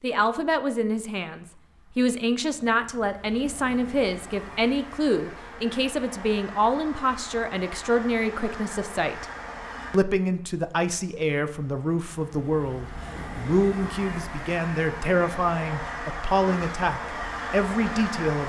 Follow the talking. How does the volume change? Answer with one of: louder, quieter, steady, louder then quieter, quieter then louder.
steady.